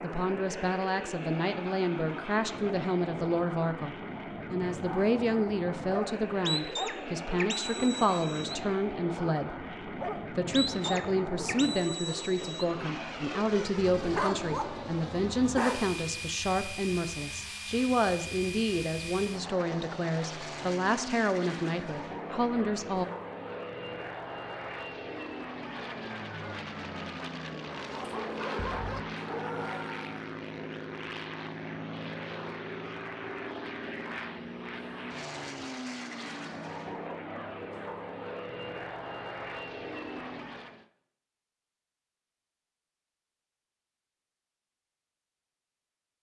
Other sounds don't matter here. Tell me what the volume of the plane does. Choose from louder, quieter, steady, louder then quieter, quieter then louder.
steady.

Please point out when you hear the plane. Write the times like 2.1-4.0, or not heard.
0.0-40.9.